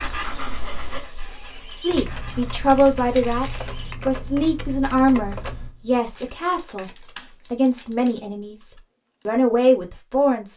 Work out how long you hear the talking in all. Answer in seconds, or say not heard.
9 s.